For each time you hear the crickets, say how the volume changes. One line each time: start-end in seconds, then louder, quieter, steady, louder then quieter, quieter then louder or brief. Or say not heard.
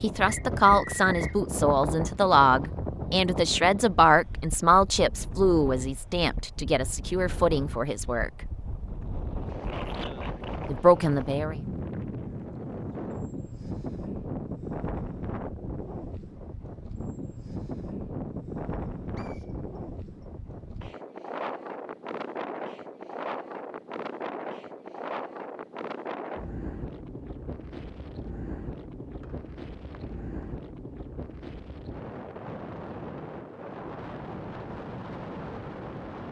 not heard.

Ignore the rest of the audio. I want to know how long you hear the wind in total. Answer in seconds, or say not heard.
36 s.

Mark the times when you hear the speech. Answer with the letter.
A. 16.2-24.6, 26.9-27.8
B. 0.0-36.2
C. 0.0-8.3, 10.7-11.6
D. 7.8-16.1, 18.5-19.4
C.